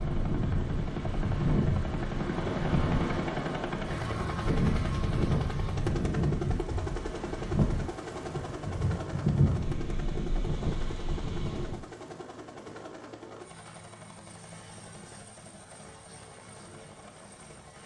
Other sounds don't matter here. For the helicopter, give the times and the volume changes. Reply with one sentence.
The helicopter can be heard from 0.0 to 17.8 s, getting quieter.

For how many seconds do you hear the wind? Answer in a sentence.
You can hear the wind for 12 seconds altogether.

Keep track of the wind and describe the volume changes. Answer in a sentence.
The volume of the wind stays about the same.